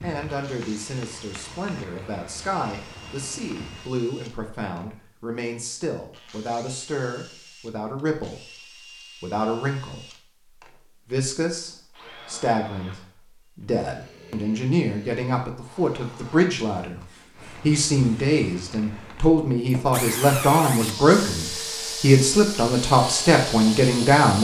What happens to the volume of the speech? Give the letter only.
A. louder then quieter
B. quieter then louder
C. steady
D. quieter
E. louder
E.